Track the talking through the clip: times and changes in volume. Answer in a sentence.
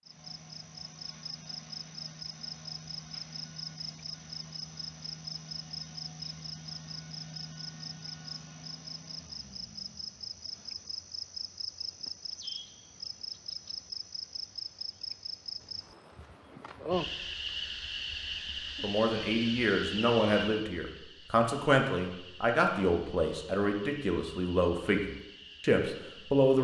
The talking can be heard from 18.8 to 26.5 s, at a steady volume.